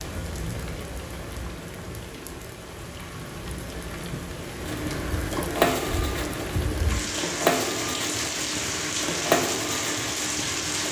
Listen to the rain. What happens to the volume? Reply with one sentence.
The loudness of the rain goes up.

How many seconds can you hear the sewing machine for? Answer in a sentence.
The sewing machine can be heard for 6 seconds in total.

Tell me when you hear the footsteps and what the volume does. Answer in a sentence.
The footsteps can't be heard in this clip.